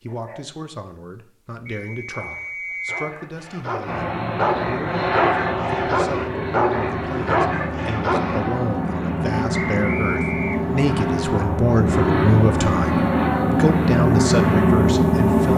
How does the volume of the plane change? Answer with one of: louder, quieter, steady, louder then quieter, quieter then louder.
louder.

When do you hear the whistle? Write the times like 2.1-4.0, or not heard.
1.6-3.0, 9.7-10.8.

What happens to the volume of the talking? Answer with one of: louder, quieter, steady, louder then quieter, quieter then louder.
louder.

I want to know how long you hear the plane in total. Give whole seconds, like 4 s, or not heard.
12 s.